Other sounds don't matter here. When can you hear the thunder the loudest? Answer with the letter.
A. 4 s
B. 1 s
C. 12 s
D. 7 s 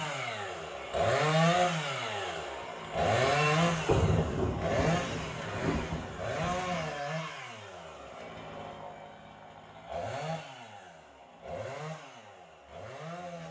A.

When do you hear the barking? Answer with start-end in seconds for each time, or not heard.
not heard.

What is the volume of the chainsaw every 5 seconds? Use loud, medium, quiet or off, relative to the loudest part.
loud, medium, quiet.